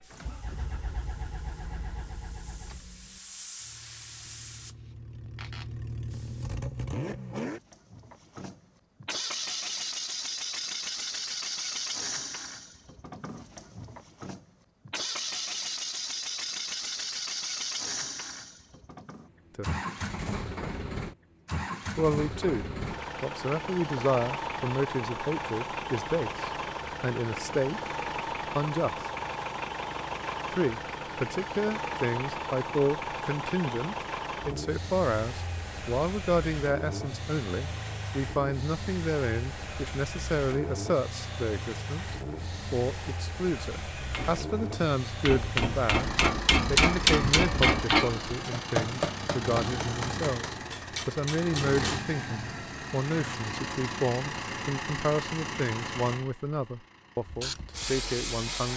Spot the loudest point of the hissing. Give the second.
58 s.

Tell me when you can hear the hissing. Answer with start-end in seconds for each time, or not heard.
0.0-6.5, 57.2-58.7.